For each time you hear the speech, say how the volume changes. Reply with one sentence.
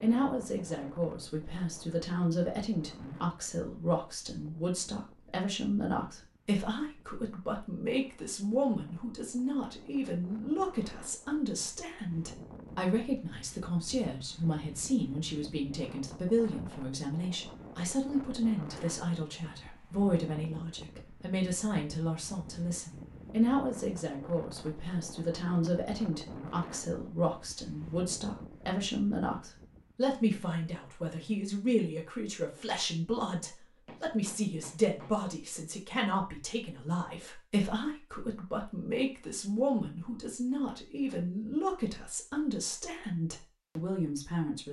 The speech can be heard from 0.0 to 44.6 s, at a steady volume.